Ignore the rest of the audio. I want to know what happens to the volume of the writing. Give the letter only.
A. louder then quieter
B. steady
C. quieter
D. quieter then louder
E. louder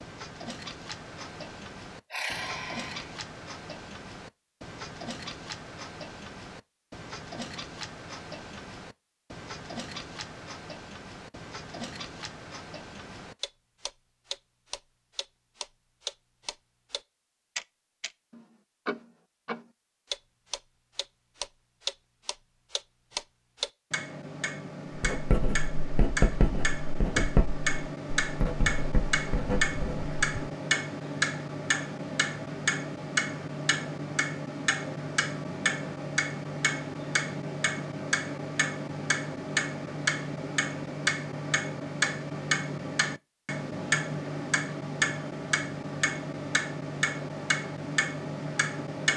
A.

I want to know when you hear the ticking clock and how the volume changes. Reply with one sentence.
You can hear the ticking clock from 0.0 to 49.1 s, getting louder.